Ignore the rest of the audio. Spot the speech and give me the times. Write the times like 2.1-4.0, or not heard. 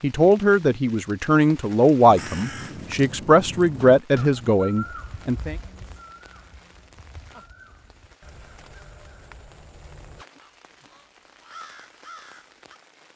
0.0-5.5.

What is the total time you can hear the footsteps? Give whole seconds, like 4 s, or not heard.
not heard.